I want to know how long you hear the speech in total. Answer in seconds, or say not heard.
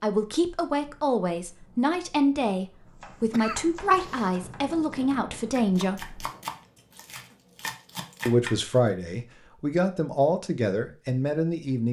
10 s.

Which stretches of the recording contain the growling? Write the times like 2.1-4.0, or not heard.
not heard.